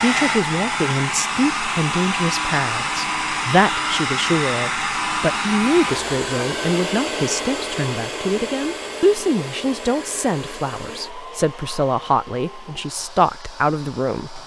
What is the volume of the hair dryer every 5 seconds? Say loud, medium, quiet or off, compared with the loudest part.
loud, loud, quiet.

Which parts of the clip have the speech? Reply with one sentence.
The speech can be heard from 0.0 to 14.4 s.